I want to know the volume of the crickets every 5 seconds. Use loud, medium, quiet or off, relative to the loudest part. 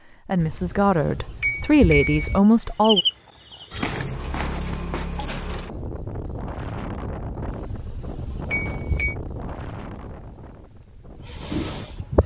loud, loud, medium.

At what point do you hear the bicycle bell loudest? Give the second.
2 s.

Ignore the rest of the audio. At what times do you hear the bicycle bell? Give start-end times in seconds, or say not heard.
0.4-2.4, 7.5-9.2.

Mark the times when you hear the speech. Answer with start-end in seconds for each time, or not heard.
0.1-3.0.